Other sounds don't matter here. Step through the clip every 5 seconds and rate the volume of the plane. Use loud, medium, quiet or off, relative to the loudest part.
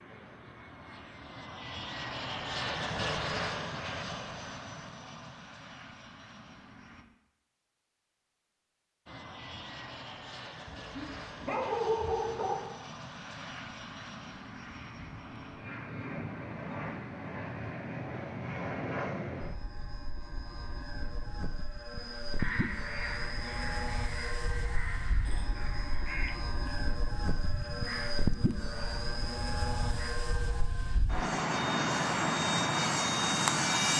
medium, quiet, quiet, medium, medium, medium, loud.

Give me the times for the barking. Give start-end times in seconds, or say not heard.
10.7-12.6.